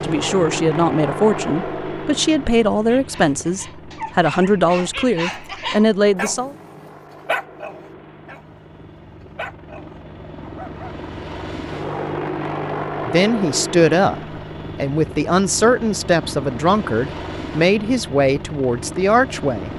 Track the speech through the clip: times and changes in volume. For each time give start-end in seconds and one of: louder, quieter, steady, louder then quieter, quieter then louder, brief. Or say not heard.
0.0-6.5 steady
13.1-19.7 steady.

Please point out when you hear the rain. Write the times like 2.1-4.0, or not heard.
not heard.